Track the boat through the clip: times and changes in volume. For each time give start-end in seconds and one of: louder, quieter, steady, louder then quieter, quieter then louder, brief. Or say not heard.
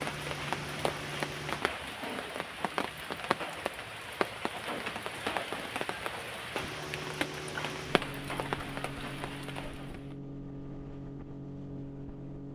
0.0-1.6 brief
6.5-12.5 steady.